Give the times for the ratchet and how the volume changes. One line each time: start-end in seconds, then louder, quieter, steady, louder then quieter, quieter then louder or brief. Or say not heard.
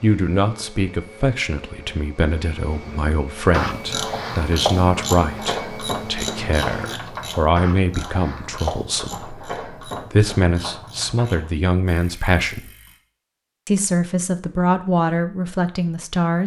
3.5-13.0 quieter.